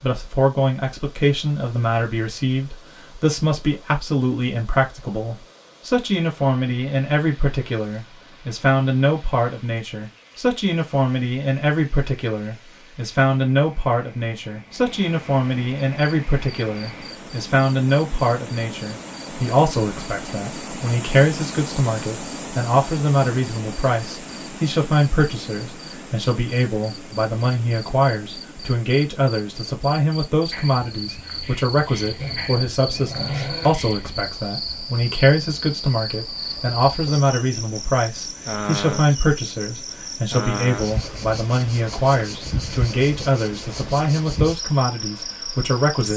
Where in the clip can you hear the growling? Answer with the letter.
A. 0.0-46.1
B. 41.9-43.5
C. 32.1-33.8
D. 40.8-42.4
C.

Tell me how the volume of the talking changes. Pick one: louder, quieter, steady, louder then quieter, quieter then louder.
steady.